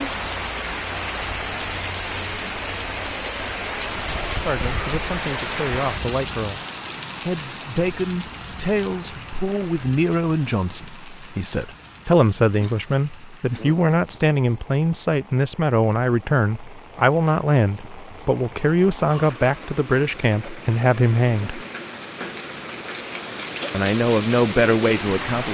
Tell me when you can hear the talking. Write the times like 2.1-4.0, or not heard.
4.2-6.6, 7.2-21.6, 23.7-25.4.